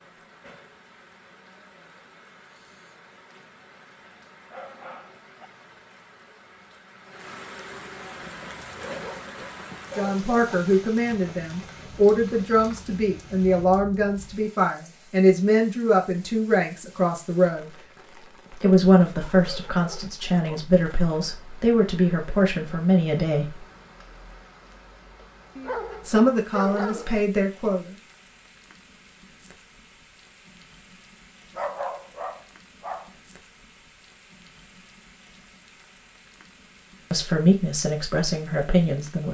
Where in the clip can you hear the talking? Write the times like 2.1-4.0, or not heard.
9.9-17.7, 18.5-23.6, 26.1-27.9, 37.1-39.2.